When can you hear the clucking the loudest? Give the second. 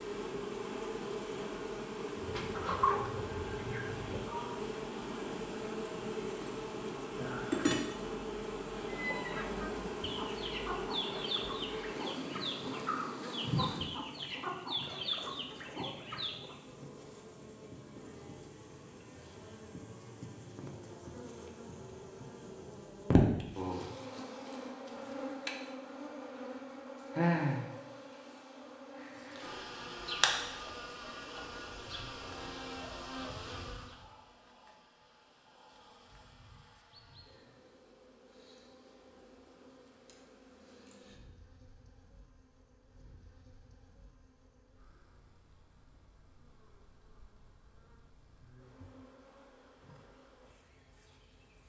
3 s.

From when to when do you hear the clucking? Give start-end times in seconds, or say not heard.
2.1-4.5, 8.8-16.6.